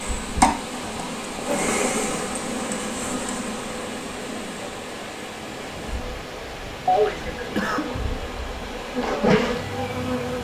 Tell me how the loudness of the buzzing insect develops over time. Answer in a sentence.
The volume of the buzzing insect goes down, then up.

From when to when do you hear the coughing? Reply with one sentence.
You can hear the coughing from 1.4 to 1.9 s and from 6.8 to 7.8 s.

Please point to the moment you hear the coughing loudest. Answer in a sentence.
The volume of the coughing peaks at 7 seconds.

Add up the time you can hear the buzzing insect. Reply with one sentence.
You can hear the buzzing insect for 10 seconds altogether.